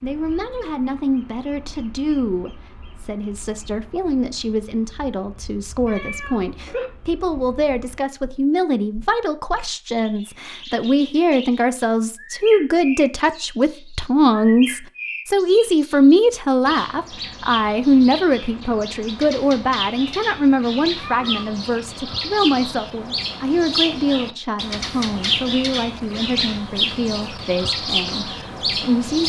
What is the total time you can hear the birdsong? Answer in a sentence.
The birdsong can be heard for 29 seconds in total.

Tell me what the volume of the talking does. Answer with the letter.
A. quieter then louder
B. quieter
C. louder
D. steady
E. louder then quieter
E.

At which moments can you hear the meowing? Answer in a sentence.
The meowing can be heard from 5.8 to 6.8 s and from 20.9 to 21.6 s.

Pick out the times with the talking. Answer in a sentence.
The talking can be heard from 0.0 to 29.2 s.